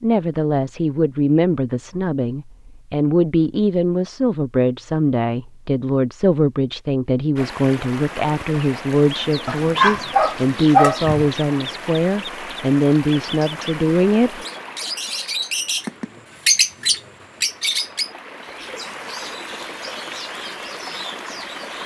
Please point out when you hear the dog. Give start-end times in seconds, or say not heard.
9.4-11.3.